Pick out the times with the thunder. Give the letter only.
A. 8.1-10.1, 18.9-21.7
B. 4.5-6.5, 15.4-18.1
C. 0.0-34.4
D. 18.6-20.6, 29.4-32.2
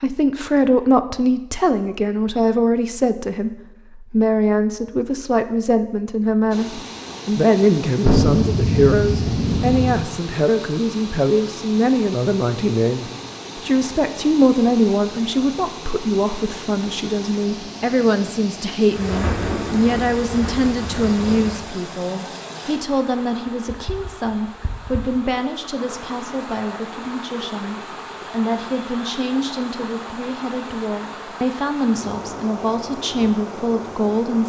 A.